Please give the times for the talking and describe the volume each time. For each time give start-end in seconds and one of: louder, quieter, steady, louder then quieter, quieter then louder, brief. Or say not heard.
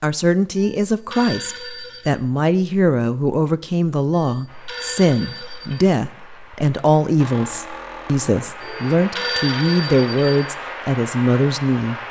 0.0-12.0 steady.